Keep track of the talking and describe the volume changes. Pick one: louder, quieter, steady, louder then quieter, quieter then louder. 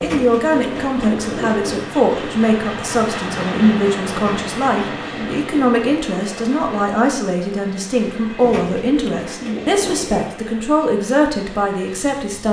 steady.